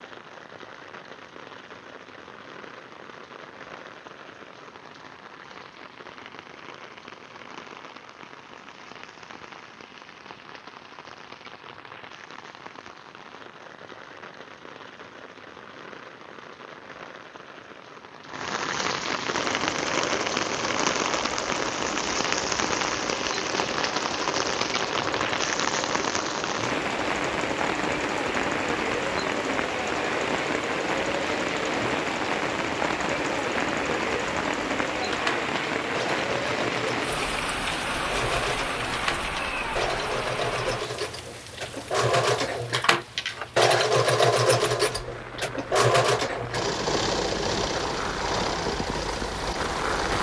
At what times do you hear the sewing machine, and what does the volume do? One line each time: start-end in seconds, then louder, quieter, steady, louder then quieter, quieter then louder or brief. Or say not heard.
19.3-50.1 louder.